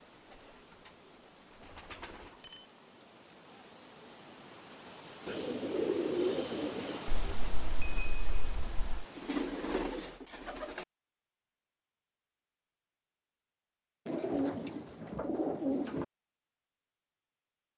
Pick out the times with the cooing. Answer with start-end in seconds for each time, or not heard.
0.3-0.9, 1.5-2.4, 5.2-7.0, 9.2-10.8, 14.1-16.1.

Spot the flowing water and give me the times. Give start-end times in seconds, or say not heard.
0.0-10.2.